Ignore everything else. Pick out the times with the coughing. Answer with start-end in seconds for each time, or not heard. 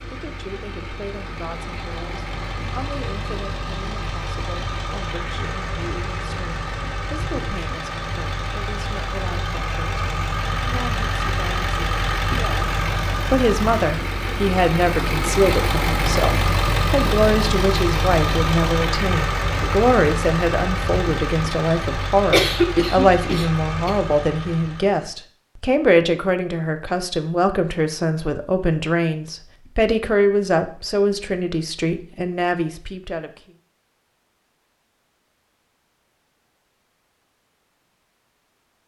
22.3-23.9.